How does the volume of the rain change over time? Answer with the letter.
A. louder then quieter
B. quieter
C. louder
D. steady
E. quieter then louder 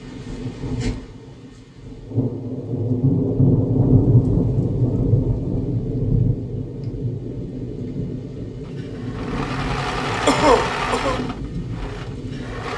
A.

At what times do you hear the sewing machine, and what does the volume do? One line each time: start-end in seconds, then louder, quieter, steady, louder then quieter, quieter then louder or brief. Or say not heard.
8.7-12.7 louder then quieter.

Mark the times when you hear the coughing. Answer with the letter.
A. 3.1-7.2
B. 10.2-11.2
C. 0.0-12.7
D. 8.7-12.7
B.